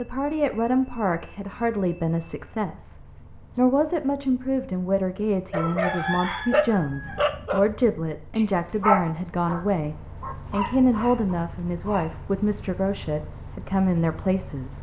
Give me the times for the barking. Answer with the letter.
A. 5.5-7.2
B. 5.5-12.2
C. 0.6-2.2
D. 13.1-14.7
B.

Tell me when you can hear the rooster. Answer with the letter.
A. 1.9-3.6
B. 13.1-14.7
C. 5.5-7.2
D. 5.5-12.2
C.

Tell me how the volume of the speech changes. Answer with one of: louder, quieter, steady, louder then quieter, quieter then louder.
steady.